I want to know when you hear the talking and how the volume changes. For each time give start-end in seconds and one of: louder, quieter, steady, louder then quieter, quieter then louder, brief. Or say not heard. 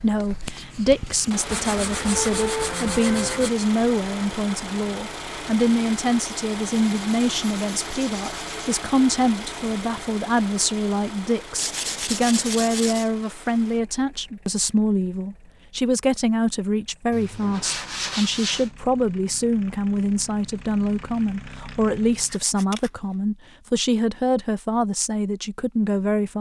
0.0-26.3 steady.